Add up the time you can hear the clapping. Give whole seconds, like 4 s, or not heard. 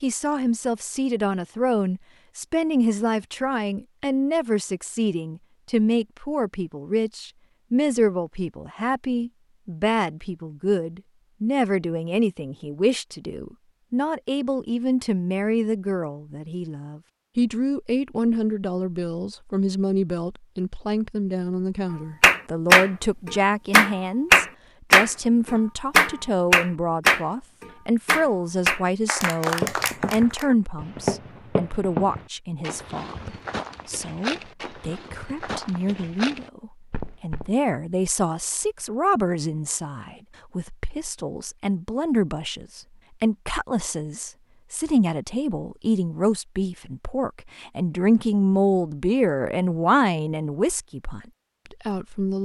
8 s.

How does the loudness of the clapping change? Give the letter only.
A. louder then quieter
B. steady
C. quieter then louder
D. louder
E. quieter
E.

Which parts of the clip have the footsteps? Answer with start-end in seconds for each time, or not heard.
29.6-37.5.